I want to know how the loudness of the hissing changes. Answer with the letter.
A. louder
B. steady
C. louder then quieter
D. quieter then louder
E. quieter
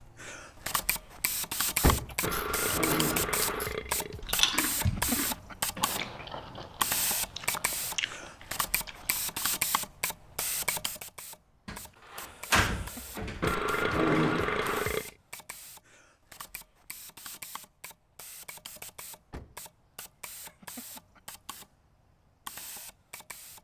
E.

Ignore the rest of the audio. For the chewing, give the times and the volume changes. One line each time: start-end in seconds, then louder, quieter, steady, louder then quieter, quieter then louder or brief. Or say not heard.
1.9-9.4 louder then quieter.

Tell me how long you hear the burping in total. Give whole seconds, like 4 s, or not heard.
4 s.